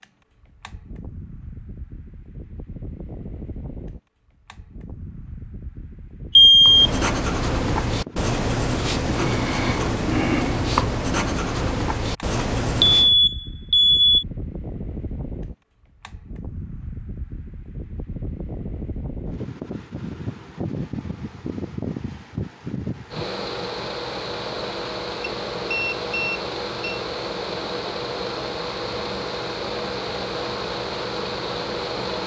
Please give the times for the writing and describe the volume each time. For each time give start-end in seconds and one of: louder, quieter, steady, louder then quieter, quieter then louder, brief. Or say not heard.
6.6-13.2 steady.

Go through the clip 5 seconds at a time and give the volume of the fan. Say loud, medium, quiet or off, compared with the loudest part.
quiet, medium, medium, medium, loud, loud, loud.